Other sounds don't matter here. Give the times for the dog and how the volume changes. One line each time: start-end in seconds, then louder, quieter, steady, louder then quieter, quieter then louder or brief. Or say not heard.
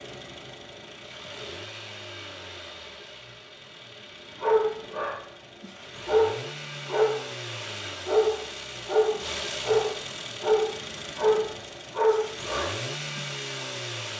4.4-7.3 brief
8.1-13.7 quieter.